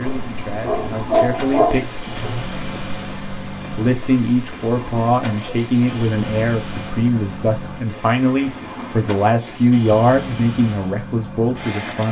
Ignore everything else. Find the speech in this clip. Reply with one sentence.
You can hear the speech from 0.0 to 2.0 s and from 3.8 to 12.0 s.